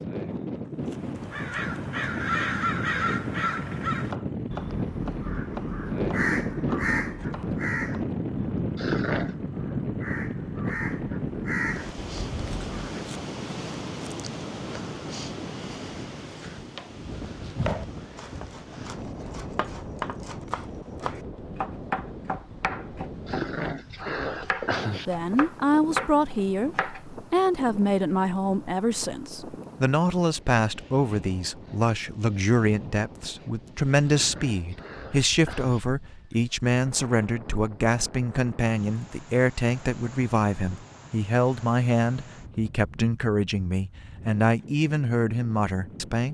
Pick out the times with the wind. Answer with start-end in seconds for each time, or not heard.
0.0-46.2.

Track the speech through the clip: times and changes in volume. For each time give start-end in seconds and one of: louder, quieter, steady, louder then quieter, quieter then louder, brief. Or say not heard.
25.1-46.2 steady.